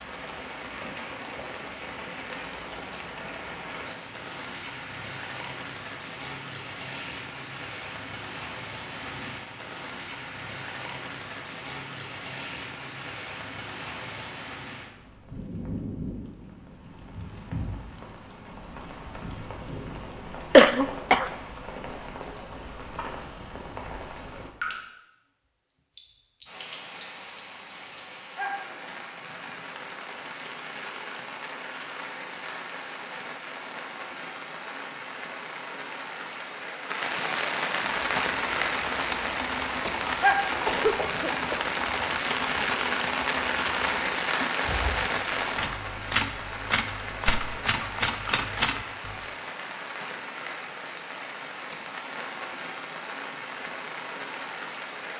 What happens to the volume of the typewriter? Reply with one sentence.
The loudness of the typewriter goes up.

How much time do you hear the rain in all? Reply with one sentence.
The rain can be heard for 55 seconds in total.